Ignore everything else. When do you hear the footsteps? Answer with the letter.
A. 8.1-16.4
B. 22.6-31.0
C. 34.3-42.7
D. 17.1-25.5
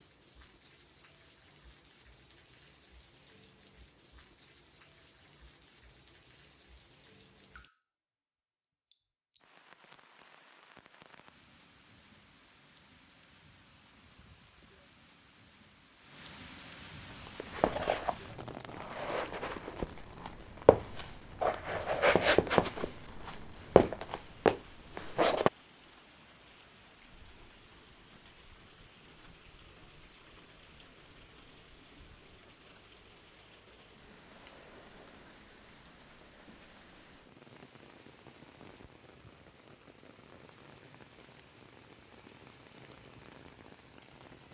D.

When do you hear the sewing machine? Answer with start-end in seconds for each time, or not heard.
not heard.